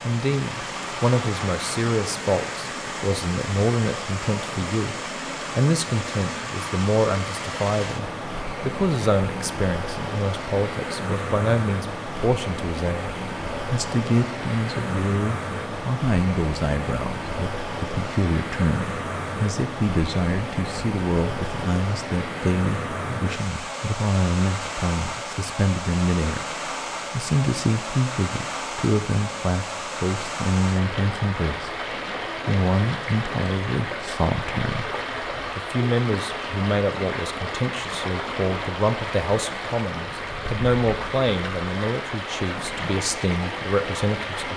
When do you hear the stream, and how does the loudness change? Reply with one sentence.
The stream can be heard from 0.0 to 44.5 s, at a steady volume.